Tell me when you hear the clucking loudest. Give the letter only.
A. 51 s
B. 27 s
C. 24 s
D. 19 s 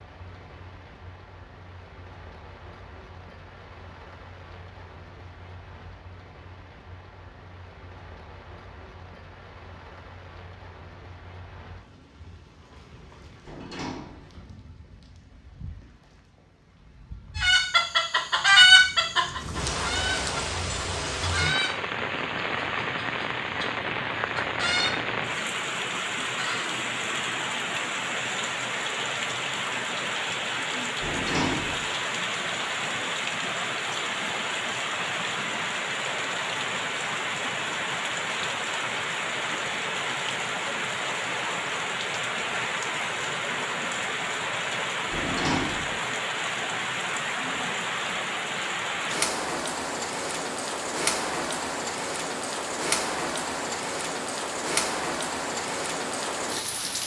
D.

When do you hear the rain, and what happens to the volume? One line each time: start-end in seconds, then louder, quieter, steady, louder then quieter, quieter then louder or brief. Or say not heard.
0.0-57.0 louder.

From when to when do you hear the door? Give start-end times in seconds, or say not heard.
13.4-14.3, 31.0-31.9, 45.1-46.0.